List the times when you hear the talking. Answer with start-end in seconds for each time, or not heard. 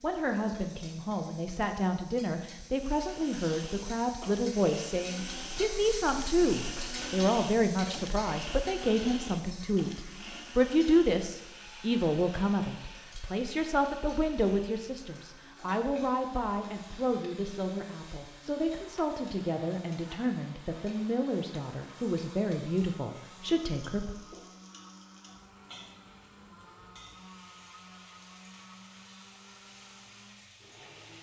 0.0-24.1.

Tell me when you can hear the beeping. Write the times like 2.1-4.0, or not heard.
not heard.